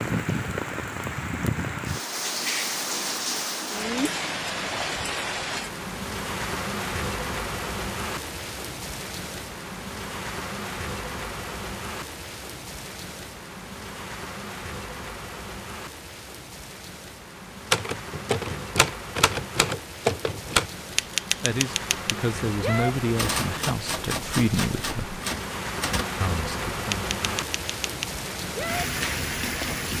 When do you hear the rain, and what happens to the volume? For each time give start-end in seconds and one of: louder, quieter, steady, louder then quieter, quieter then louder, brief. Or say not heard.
0.0-29.9 quieter then louder.